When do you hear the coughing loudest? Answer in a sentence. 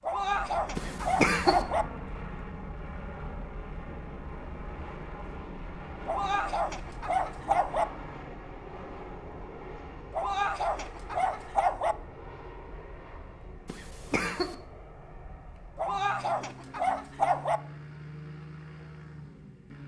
The loudest moment of the coughing is at 1 second.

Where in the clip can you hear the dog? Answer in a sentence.
You can hear the dog from 0.0 to 1.9 s, from 6.0 to 7.8 s, from 10.1 to 11.9 s and from 15.8 to 17.6 s.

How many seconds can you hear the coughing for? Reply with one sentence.
You can hear the coughing for 2 seconds altogether.